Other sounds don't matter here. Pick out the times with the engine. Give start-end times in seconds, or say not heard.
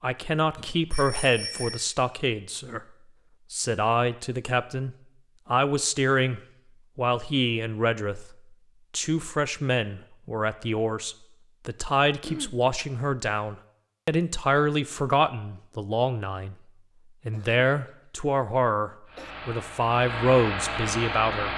19.1-21.5.